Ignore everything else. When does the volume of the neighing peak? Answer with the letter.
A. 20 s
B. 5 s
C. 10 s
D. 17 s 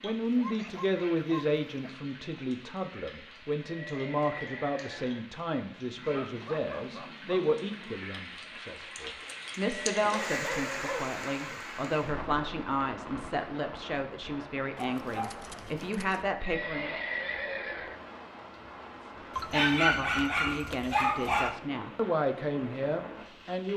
D.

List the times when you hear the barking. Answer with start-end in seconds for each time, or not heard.
0.1-1.9, 6.0-8.0, 10.1-11.7, 14.8-16.2, 19.4-21.6.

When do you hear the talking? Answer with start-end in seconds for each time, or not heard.
0.0-16.9, 19.5-23.7.